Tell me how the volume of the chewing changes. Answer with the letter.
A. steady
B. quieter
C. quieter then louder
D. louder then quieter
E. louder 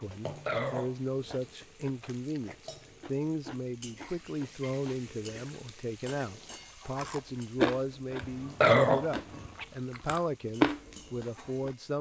E.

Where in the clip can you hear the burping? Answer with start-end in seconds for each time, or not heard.
0.3-1.4, 8.2-9.5.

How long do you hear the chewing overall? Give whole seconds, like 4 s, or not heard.
11 s.